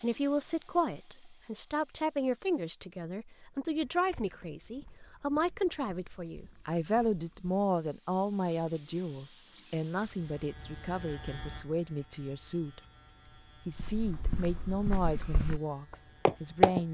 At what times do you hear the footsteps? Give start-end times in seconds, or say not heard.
3.5-7.5, 13.8-15.6, 16.2-16.8.